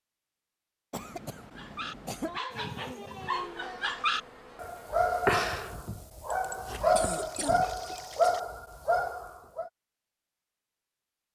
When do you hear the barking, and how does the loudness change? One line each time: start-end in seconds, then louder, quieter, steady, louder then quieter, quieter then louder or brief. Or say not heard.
1.6-9.7 louder.